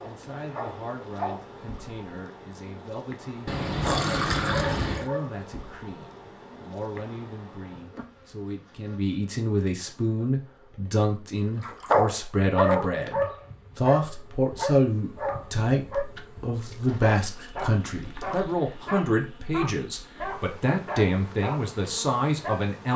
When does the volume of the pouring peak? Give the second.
4 s.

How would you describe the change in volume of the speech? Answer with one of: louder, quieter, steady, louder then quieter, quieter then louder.
louder.